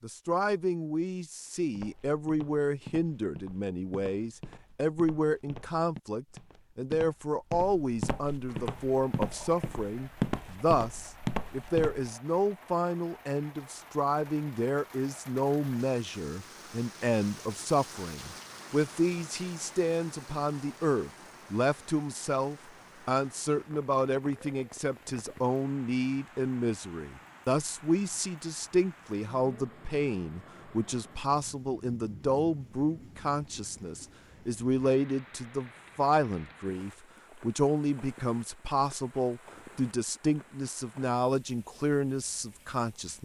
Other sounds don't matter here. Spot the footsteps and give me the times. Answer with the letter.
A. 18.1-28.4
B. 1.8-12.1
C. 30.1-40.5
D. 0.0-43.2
B.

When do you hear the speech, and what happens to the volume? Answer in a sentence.
You can hear the speech from 0.0 to 43.2 s, at a steady volume.